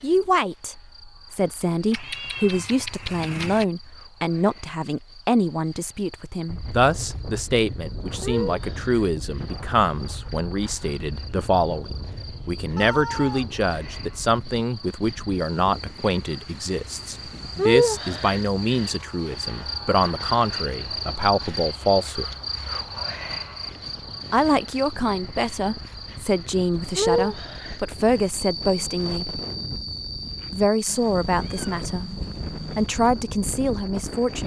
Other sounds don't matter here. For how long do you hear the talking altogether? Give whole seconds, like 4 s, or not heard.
31 s.